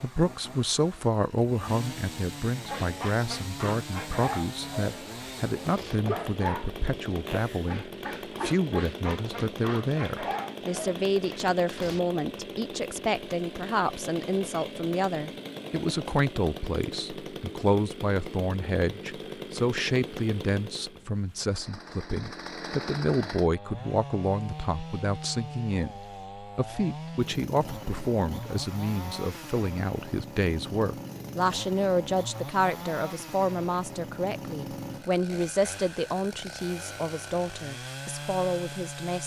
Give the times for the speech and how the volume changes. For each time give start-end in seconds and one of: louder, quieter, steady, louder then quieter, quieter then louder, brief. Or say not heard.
0.0-39.2 steady.